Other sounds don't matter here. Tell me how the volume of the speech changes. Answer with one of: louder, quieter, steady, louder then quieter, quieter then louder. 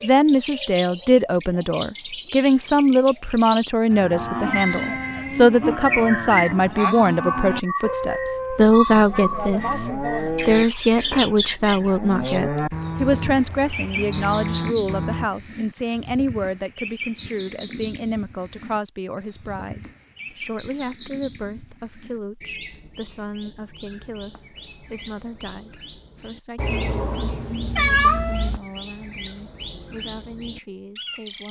quieter.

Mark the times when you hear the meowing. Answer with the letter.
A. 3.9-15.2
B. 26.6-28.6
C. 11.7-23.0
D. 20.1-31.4
B.